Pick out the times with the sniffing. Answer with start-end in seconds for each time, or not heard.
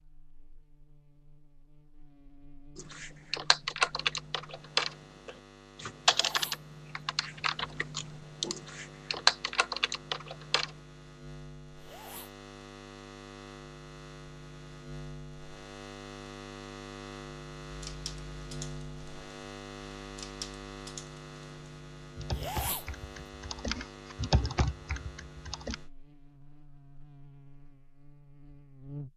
6.0-6.6, 11.8-12.3, 22.3-22.9.